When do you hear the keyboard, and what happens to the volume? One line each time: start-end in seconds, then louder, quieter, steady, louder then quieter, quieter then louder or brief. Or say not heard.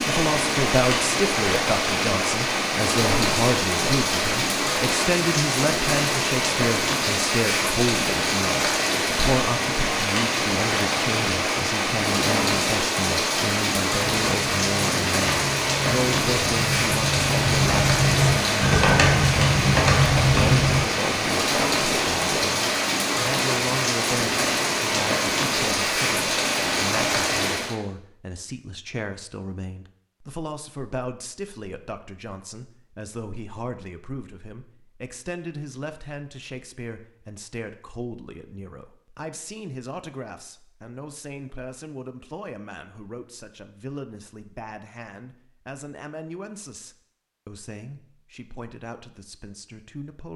14.0-20.9 louder.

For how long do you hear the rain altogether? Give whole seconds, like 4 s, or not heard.
28 s.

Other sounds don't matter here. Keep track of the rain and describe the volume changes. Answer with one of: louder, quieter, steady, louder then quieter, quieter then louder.
steady.